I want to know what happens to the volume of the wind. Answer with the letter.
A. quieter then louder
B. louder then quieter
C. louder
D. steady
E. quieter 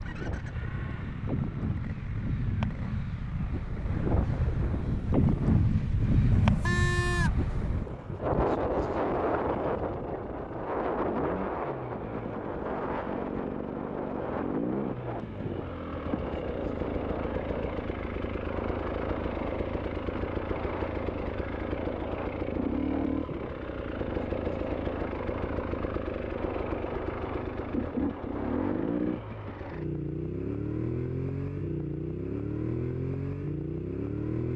E.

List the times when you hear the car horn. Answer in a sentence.
You can hear the car horn from 6.3 to 7.5 s.